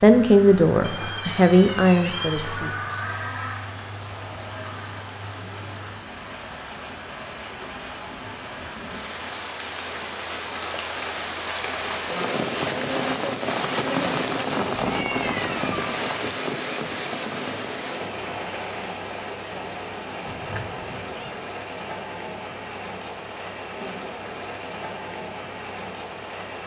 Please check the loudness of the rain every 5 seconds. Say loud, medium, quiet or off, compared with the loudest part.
medium, medium, loud, loud, medium, medium.